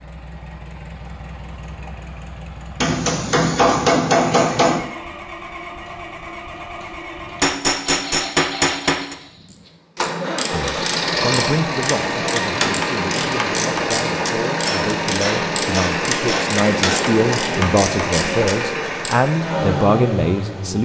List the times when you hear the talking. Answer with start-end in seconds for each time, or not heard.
10.5-20.8.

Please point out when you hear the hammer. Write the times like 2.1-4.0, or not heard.
2.8-4.8, 7.4-9.2, 14.7-17.1.